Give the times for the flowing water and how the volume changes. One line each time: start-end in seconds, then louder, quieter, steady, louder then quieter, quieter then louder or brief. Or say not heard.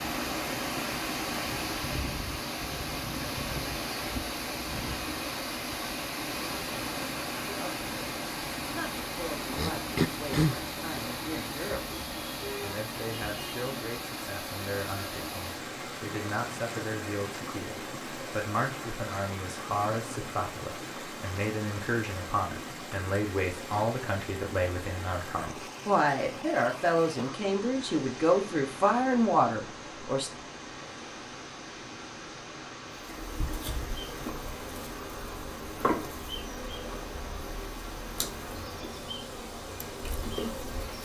0.0-41.0 quieter.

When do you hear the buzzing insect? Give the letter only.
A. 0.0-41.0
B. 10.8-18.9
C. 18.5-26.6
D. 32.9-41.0
D.